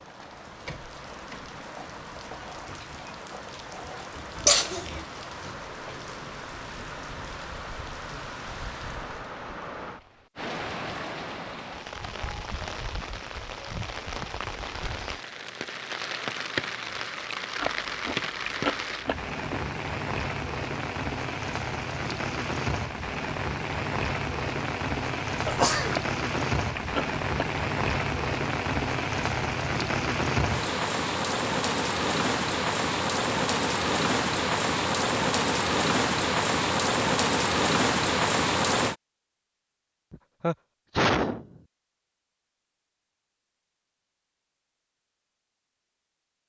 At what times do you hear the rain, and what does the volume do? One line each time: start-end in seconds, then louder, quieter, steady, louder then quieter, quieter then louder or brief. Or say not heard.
0.0-39.0 louder.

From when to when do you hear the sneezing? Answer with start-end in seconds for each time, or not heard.
4.3-5.0, 25.4-25.9, 40.1-41.5.